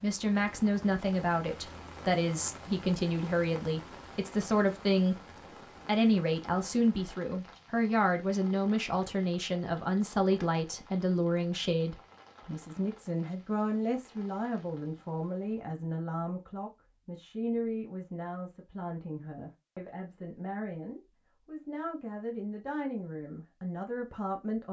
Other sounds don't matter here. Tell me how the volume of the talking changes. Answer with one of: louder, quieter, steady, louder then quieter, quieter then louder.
quieter.